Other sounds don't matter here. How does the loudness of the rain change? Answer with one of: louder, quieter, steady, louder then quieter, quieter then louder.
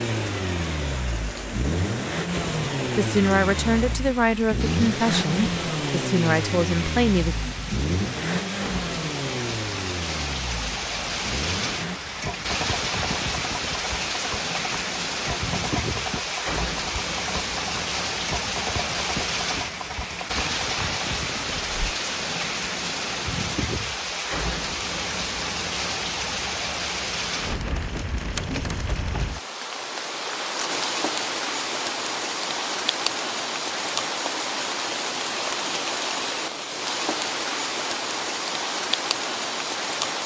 louder.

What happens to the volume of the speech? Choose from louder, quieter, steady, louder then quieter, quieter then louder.
steady.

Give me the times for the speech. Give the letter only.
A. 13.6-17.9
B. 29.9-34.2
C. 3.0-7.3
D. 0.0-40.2
C.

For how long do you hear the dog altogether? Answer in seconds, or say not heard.
not heard.